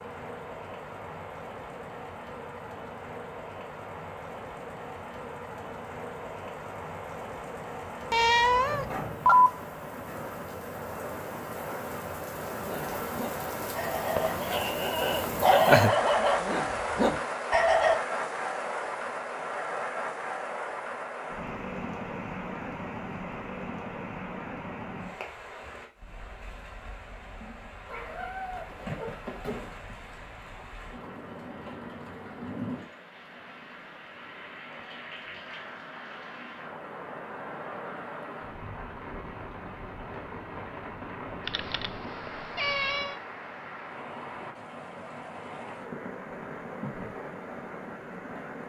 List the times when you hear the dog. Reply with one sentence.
The dog can be heard from 12.6 to 18.0 s.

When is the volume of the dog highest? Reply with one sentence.
The volume of the dog peaks at 16 seconds.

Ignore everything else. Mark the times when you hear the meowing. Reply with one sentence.
The meowing can be heard from 8.1 to 9.5 s, from 27.9 to 29.7 s and from 41.5 to 43.1 s.